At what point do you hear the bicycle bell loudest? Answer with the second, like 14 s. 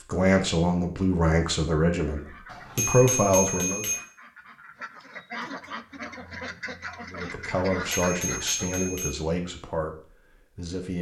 3 s.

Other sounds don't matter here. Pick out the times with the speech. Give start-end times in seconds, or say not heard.
0.0-3.9, 7.1-10.9.